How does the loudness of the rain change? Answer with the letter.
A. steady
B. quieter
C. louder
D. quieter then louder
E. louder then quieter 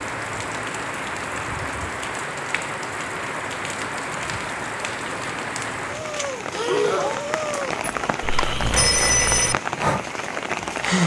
A.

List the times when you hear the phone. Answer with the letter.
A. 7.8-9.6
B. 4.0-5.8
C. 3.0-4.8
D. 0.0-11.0
A.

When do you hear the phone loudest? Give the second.
9 s.